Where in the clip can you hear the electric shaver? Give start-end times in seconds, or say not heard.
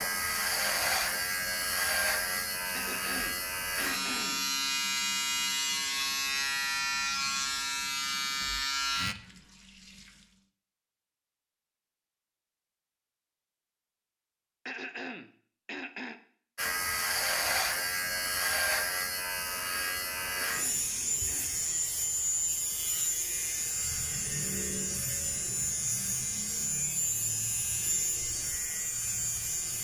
0.0-9.2, 16.6-29.7.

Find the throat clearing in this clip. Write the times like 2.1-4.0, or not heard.
2.7-4.4, 14.7-16.2, 20.2-21.6.